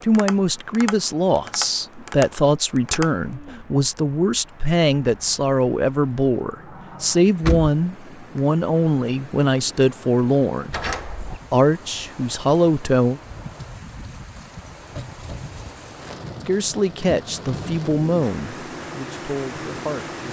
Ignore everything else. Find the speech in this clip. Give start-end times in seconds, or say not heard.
0.0-10.8, 11.5-13.2, 16.4-20.2.